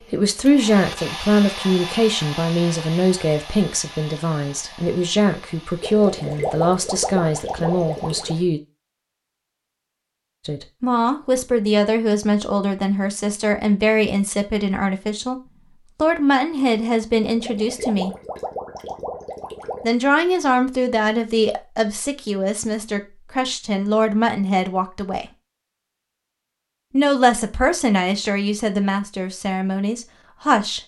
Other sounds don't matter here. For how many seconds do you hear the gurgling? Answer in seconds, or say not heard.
5 s.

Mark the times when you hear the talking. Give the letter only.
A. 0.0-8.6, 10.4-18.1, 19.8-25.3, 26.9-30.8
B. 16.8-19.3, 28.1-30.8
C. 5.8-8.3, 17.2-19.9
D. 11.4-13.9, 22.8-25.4
A.